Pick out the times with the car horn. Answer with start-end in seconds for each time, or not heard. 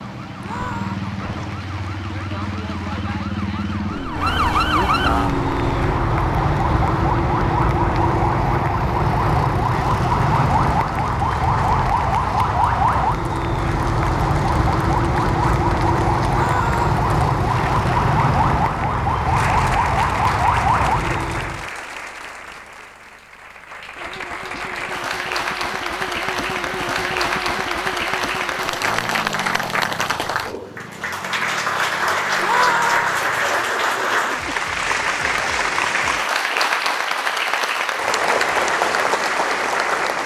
not heard.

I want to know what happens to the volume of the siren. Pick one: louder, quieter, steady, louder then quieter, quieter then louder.
louder.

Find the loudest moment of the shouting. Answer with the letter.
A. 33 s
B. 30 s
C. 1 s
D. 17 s
A.